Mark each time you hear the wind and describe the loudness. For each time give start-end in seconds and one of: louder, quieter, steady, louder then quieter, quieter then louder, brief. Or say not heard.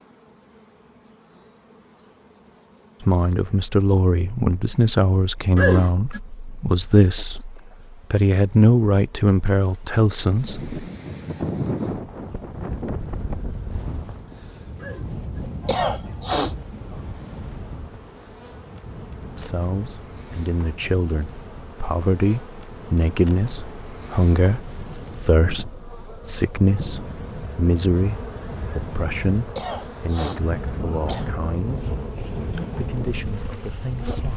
10.2-34.3 quieter then louder.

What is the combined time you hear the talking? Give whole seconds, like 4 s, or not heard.
23 s.